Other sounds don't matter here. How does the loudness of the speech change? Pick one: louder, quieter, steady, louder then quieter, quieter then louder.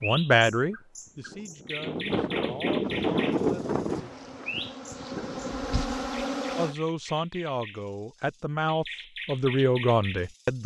quieter then louder.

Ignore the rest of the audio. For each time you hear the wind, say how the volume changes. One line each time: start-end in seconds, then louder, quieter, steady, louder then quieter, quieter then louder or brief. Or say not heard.
0.0-6.8 louder then quieter.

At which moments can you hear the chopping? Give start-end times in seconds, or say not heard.
not heard.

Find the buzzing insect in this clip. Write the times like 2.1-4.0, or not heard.
2.8-6.8.